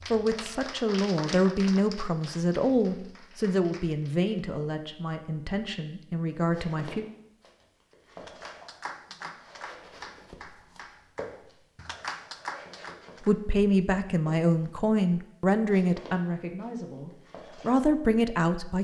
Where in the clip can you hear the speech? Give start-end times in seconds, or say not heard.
0.1-7.0, 13.2-18.7.